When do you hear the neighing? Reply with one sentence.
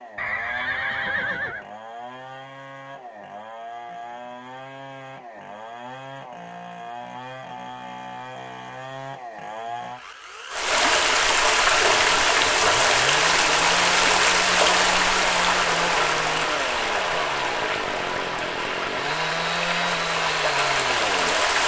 The neighing can be heard from 0.1 to 1.6 s.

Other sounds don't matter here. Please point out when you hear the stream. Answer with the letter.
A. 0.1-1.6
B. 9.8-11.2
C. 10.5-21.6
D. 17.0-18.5
C.